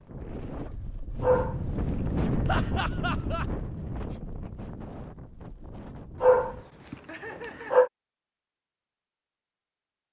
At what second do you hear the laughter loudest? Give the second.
3 s.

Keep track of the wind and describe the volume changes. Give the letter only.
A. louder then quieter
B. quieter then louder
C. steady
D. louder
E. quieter
A.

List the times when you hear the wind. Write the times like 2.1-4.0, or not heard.
0.0-6.7.